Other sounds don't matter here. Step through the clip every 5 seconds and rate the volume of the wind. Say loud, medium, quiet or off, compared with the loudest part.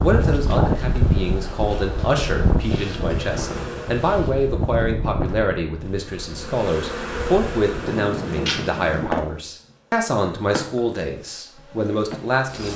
loud, medium, off.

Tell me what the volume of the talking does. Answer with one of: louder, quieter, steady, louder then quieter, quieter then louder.
steady.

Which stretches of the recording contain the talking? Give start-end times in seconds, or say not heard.
0.0-12.7.